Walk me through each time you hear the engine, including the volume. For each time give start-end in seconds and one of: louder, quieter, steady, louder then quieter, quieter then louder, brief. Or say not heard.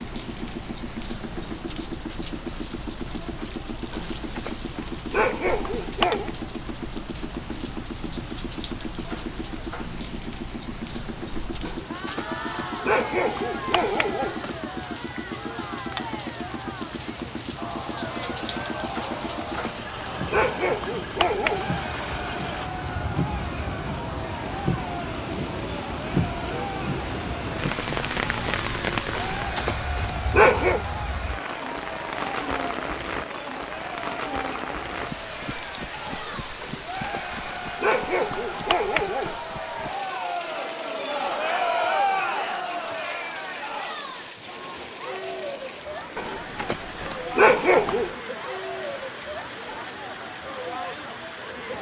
0.0-22.7 steady.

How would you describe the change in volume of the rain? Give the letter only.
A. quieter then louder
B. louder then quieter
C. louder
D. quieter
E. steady
B.